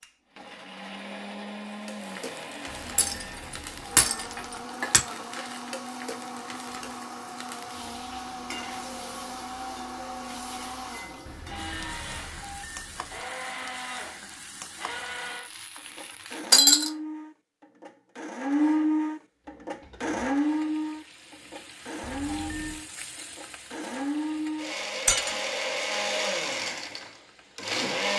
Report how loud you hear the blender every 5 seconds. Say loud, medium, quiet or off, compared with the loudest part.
medium, medium, medium, loud, loud, loud.